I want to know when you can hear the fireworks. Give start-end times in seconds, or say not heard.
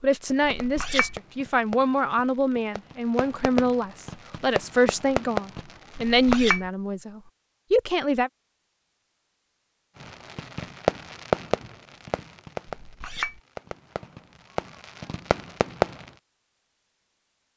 0.2-6.4, 10.0-16.1.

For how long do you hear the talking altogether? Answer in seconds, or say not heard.
8 s.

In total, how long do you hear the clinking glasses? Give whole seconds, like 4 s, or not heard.
2 s.